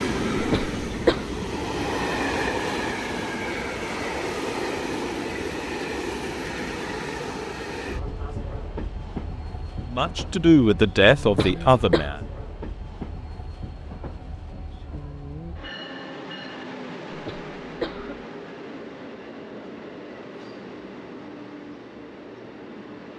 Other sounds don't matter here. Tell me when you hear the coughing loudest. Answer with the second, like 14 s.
1 s.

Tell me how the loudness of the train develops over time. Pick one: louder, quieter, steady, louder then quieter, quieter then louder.
quieter.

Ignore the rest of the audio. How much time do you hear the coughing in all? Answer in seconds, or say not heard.
3 s.